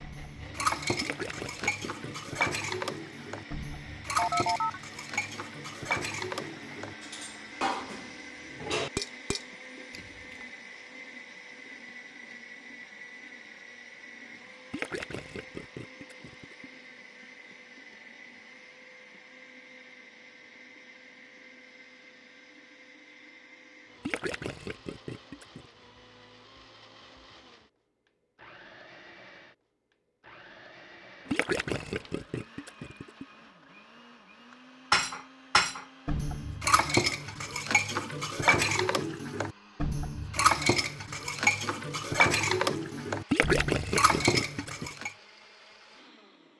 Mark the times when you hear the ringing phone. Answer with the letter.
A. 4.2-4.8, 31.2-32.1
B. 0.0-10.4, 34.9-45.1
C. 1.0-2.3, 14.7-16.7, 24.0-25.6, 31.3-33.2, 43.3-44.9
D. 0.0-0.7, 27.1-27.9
A.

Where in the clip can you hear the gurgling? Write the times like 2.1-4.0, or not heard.
1.0-2.3, 14.7-16.7, 24.0-25.6, 31.3-33.2, 43.3-44.9.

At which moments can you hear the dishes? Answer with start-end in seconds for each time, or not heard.
0.0-10.4, 34.9-45.1.